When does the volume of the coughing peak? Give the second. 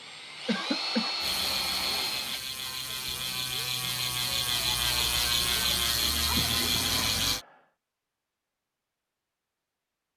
1 s.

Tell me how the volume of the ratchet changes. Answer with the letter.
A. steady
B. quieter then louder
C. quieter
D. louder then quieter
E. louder
E.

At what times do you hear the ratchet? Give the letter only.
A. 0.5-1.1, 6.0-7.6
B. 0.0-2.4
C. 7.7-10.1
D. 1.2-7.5
D.